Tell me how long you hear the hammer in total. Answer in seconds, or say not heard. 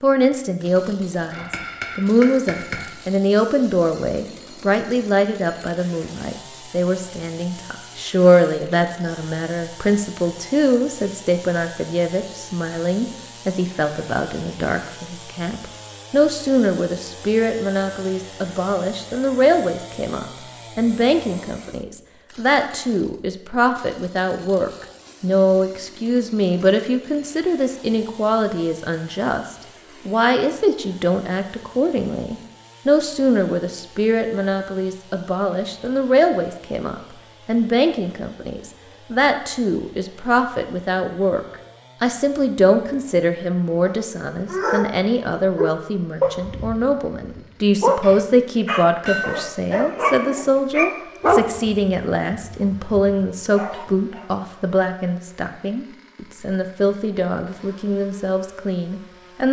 2 s.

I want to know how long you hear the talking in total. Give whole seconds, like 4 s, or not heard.
59 s.